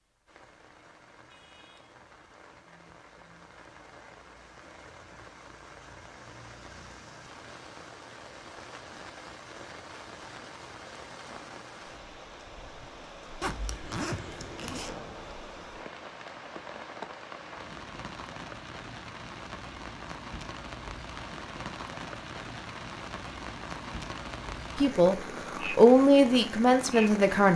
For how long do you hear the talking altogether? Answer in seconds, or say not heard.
3 s.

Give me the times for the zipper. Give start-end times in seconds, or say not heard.
13.4-14.9.